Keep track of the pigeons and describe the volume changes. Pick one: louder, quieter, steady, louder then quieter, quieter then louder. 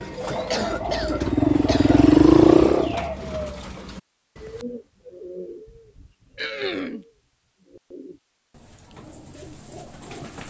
quieter.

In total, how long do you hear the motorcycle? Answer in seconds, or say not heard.
3 s.